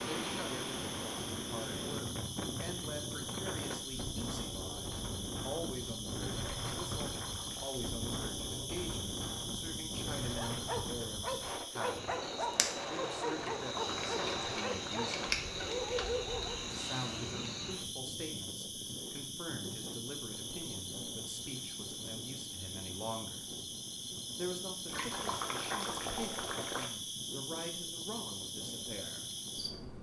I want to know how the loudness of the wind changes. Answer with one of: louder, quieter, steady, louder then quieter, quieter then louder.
quieter.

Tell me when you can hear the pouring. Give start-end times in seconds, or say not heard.
6.6-7.8, 13.3-15.3, 24.9-26.9.